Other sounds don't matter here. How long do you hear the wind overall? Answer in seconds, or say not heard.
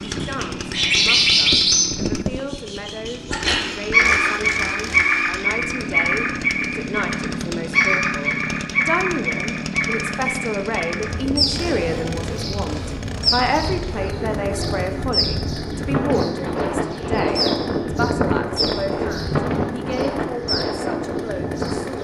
11 s.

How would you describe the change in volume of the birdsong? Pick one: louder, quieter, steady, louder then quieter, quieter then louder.
quieter.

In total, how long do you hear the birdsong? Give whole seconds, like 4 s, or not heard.
22 s.